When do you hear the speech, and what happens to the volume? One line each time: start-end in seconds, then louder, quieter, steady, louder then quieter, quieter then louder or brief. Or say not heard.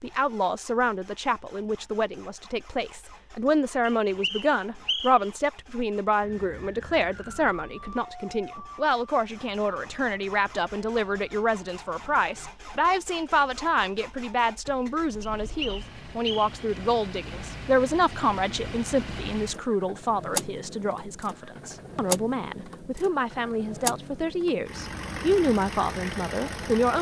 0.0-26.9 steady.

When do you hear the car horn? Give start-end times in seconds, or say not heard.
not heard.